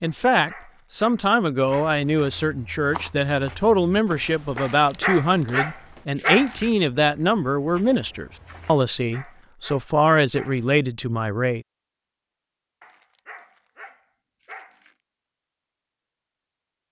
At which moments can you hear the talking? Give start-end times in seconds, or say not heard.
0.0-11.7.